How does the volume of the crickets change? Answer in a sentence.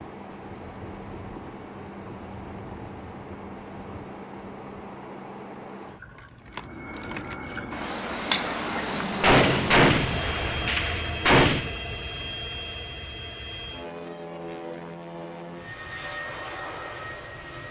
The volume of the crickets goes up.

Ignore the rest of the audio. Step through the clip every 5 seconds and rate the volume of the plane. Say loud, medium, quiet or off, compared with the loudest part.
off, loud, loud, loud.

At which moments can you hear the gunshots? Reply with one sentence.
The gunshots can be heard from 9.2 to 11.8 s.